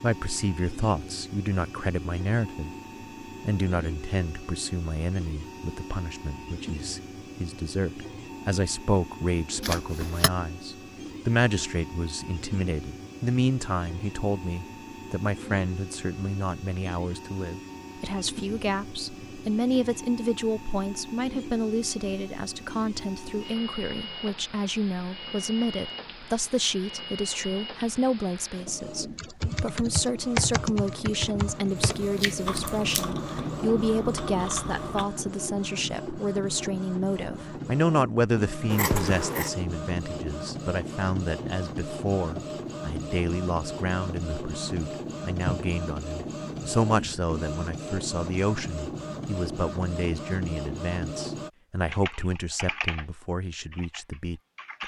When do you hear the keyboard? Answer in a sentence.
You can hear the keyboard from 29.1 to 35.1 s and from 51.9 to 54.8 s.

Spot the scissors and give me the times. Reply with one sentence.
You can hear the scissors from 9.6 to 10.3 s, from 31.8 to 33.0 s and from 38.7 to 39.5 s.